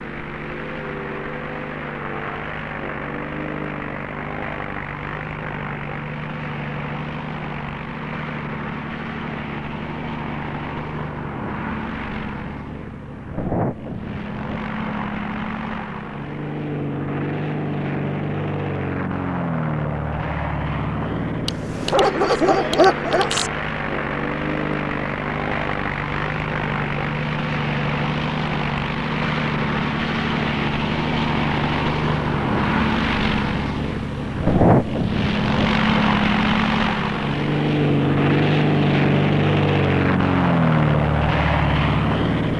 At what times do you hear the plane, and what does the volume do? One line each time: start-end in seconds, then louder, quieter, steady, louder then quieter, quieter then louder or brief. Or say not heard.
0.0-42.5 louder.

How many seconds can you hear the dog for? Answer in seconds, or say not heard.
2 s.